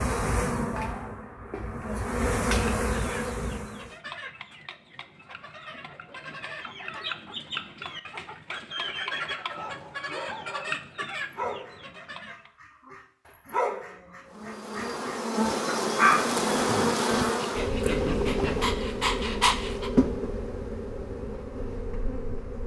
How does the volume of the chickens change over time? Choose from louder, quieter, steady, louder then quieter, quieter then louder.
louder.